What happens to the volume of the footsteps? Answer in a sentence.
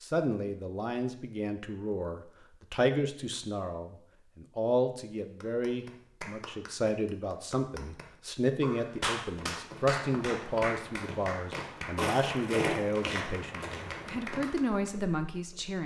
The volume of the footsteps goes up, then down.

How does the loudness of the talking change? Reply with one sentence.
The volume of the talking stays about the same.